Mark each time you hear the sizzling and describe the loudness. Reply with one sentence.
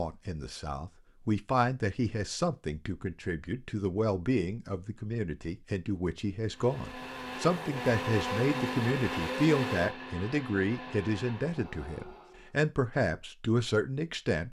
You can't hear the sizzling here.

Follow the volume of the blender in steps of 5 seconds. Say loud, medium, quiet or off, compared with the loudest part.
off, loud, medium.